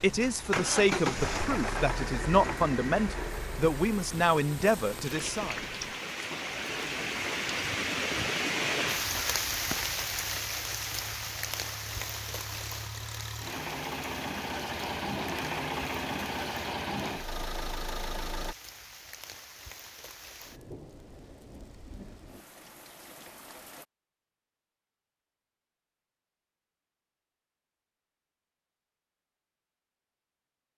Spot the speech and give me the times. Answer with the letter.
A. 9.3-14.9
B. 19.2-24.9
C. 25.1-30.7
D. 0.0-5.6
D.